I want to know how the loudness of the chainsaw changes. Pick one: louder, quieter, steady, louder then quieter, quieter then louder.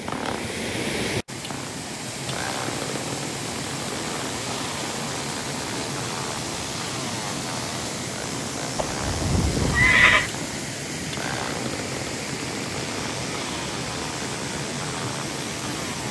steady.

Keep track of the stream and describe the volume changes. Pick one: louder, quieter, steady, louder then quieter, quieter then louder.
steady.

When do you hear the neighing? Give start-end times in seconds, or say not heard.
8.8-10.3.